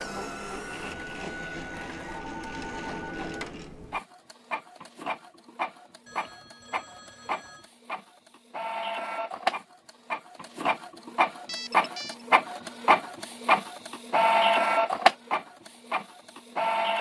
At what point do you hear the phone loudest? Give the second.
12 s.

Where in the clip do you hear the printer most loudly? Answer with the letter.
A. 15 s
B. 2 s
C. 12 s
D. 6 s
A.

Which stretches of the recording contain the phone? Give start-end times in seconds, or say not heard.
2.1-3.0, 6.0-7.7, 11.4-12.2.